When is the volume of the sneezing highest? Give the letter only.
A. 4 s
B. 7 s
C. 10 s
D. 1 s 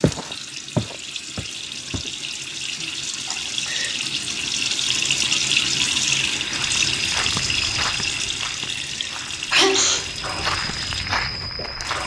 C.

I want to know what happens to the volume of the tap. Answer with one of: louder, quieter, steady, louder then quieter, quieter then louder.
louder then quieter.